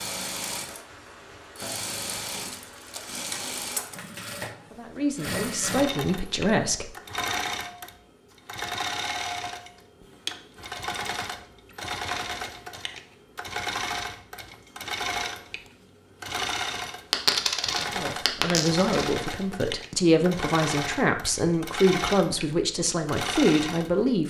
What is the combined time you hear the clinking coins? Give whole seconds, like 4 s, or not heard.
2 s.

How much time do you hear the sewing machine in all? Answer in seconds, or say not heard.
24 s.